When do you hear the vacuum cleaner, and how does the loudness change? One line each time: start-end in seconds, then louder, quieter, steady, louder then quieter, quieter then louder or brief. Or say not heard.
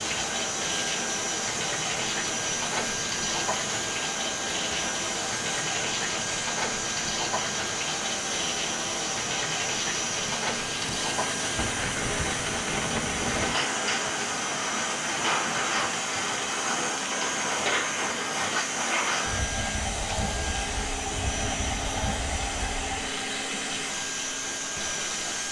0.0-25.4 steady.